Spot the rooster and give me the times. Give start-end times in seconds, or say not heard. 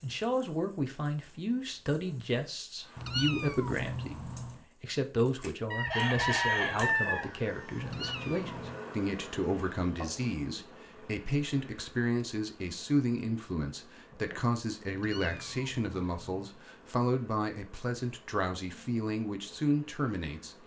5.7-8.0.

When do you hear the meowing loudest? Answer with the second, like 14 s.
3 s.